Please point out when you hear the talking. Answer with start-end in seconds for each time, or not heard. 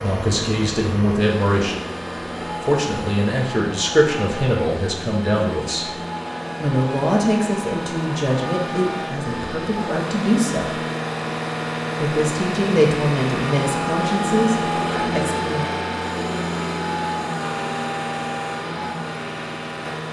0.0-1.8, 2.6-5.9, 6.6-10.8, 12.0-15.7.